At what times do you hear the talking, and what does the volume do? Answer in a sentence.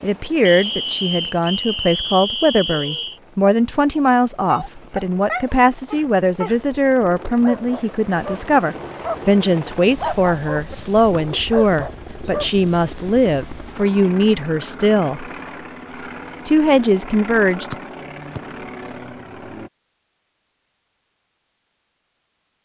You can hear the talking from 0.0 to 15.2 s, at a steady volume; and briefly from 16.4 to 17.8 s.